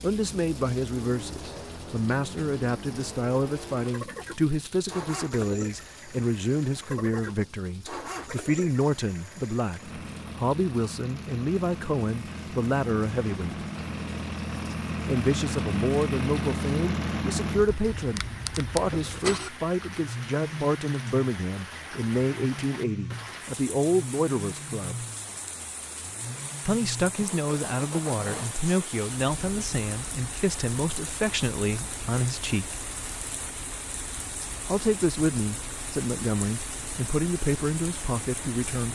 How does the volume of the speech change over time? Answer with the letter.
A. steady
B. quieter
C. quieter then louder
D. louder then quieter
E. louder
A.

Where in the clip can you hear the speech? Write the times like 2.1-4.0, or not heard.
0.0-13.7, 15.1-25.1, 26.6-32.8, 34.6-38.8.